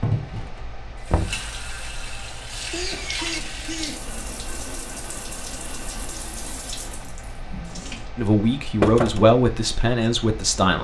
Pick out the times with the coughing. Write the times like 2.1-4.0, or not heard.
2.5-4.0.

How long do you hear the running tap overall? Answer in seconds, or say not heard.
8 s.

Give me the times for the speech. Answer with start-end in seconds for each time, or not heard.
8.2-10.8.